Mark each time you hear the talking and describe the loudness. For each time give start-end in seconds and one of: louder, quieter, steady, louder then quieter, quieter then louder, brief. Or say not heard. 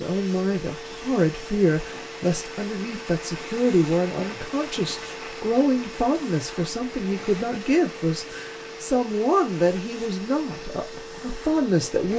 0.0-12.1 steady.